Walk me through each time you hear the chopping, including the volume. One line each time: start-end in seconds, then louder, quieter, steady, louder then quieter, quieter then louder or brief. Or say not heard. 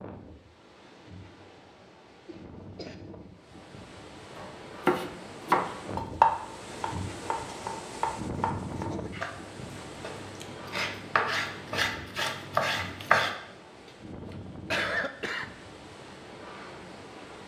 4.3-13.3 quieter then louder.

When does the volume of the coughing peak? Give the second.
15 s.